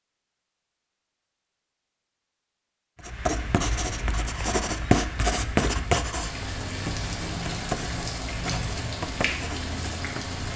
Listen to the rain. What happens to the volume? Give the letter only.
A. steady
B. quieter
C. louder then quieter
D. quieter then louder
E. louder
E.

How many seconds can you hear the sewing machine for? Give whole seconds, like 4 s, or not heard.
not heard.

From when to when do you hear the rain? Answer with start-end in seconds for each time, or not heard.
3.0-10.5.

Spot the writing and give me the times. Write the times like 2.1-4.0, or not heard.
3.0-10.1.